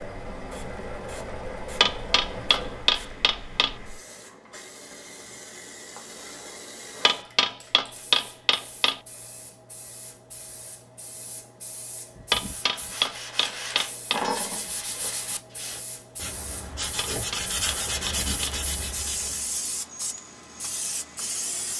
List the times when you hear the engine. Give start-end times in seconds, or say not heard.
0.0-3.0.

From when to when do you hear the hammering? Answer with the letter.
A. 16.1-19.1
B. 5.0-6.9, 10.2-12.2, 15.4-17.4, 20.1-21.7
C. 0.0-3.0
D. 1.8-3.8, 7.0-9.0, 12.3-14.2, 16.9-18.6
D.